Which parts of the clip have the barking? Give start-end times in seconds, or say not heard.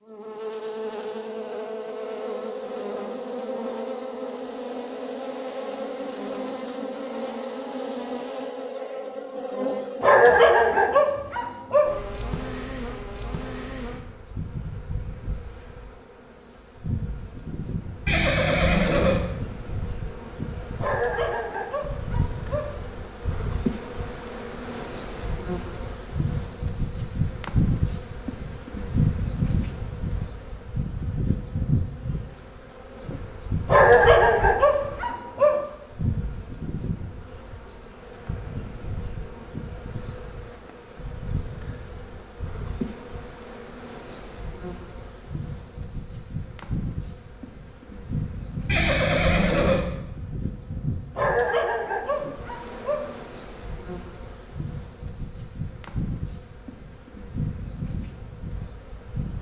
10.0-11.9, 20.8-22.7, 33.6-35.6, 51.1-53.0.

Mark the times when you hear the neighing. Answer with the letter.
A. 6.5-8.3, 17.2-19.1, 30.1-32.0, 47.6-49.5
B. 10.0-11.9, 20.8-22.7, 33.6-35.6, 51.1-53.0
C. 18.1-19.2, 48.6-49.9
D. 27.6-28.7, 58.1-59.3
C.